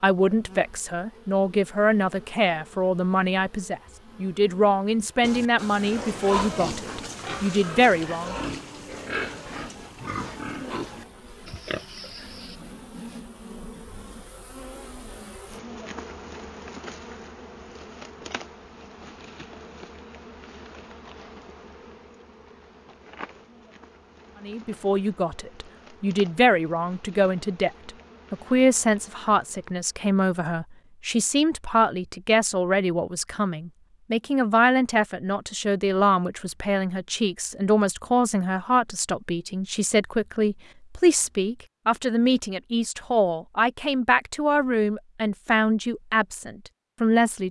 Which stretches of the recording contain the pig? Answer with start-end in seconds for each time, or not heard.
5.2-12.6.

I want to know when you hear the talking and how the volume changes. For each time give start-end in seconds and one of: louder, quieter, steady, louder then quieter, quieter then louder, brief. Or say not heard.
0.0-8.3 steady
24.4-47.4 steady.